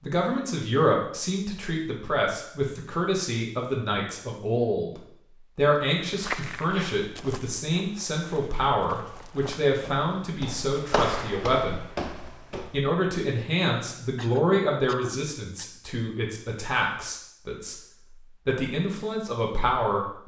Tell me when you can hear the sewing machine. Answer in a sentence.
The sewing machine can't be heard in this clip.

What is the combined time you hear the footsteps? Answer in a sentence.
You can hear the footsteps for 7 seconds altogether.